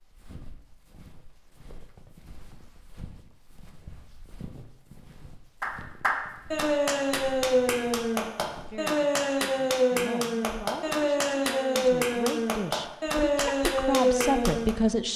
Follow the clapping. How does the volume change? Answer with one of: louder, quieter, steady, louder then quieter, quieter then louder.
steady.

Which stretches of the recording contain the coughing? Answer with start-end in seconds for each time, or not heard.
not heard.